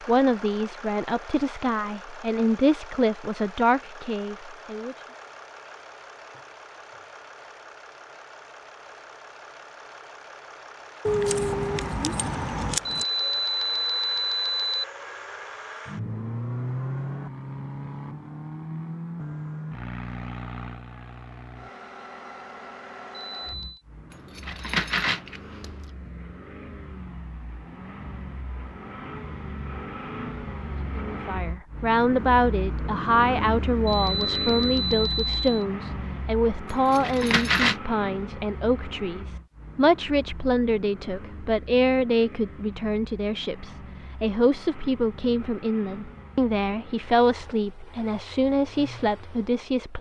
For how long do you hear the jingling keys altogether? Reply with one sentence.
You can hear the jingling keys for 5 seconds altogether.